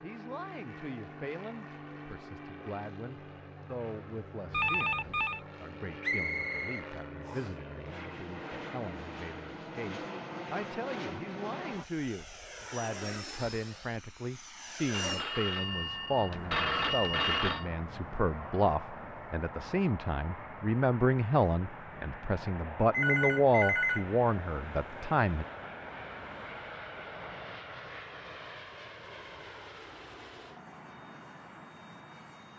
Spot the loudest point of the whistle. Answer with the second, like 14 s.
6 s.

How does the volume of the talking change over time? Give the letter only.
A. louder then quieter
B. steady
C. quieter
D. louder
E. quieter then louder
D.